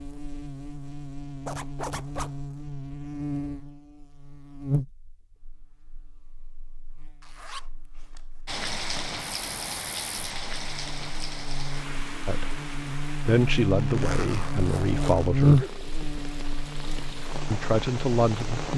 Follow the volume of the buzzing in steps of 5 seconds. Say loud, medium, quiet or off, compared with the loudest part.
medium, quiet, medium, loud.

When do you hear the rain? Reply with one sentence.
You can hear the rain from 8.4 to 18.7 s.